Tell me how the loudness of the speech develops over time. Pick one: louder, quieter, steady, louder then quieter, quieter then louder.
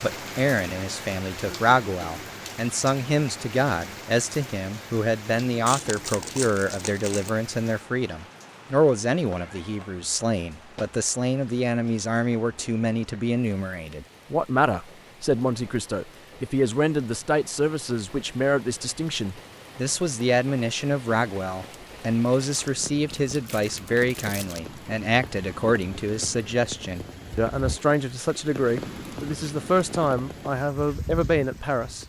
steady.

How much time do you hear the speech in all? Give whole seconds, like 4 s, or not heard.
32 s.